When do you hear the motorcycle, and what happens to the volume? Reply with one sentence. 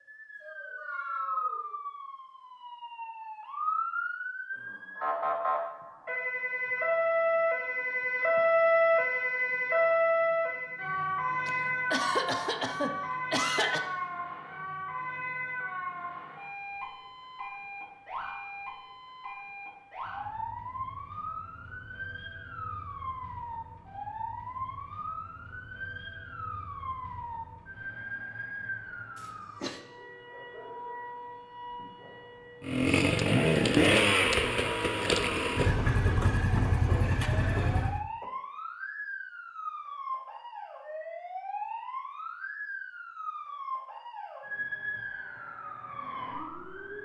The motorcycle can be heard from 32.6 to 38.0 s, getting quieter.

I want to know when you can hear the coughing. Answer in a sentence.
The coughing can be heard from 11.4 to 13.8 s, from 29.1 to 29.8 s and from 35.9 to 38.3 s.